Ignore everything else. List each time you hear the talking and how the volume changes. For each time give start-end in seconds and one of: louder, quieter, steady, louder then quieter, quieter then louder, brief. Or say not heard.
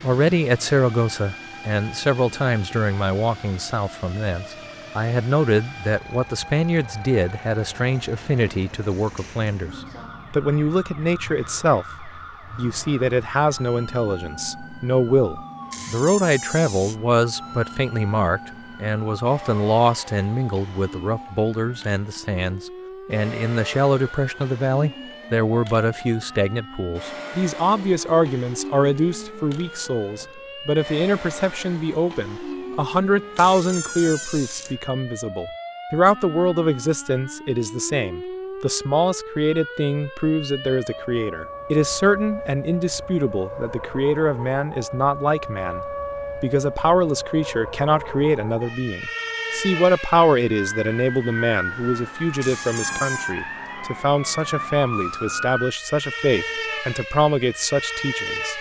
0.0-58.5 steady.